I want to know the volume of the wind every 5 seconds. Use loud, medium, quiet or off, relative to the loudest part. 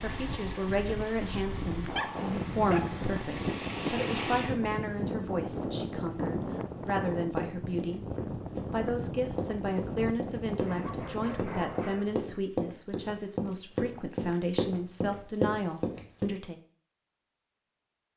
loud, loud, loud, off.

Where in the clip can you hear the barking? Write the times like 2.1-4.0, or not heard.
1.9-3.0, 10.6-12.2.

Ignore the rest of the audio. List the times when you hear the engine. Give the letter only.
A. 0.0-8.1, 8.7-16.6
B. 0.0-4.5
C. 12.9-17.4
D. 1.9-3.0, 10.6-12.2
B.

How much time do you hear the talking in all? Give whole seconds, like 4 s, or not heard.
16 s.